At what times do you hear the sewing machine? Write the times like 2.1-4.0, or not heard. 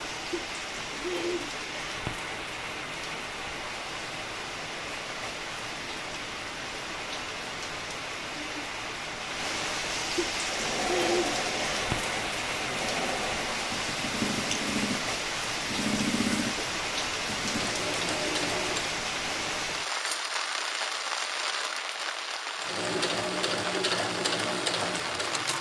10.3-19.0, 22.6-25.5.